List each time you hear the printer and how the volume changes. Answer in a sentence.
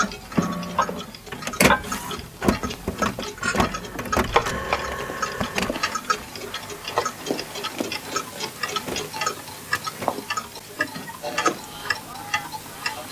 The printer can be heard from 0.0 to 13.0 s, getting quieter.